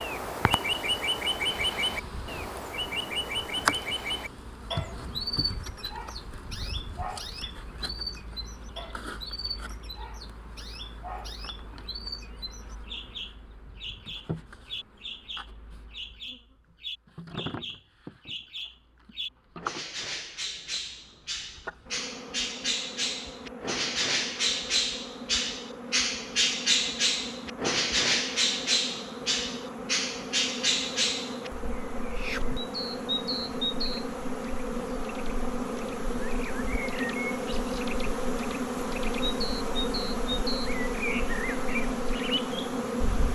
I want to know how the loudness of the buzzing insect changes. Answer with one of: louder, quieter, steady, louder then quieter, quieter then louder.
quieter then louder.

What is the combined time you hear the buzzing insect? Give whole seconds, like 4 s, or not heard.
43 s.